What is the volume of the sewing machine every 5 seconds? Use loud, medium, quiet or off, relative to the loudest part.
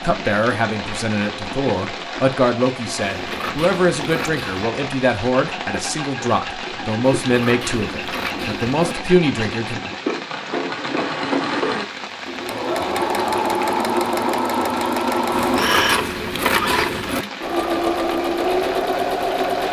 quiet, medium, loud, loud.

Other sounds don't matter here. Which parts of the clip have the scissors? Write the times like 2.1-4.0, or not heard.
3.0-4.7, 7.2-8.9, 15.3-17.2.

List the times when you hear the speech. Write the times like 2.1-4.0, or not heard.
0.0-9.8.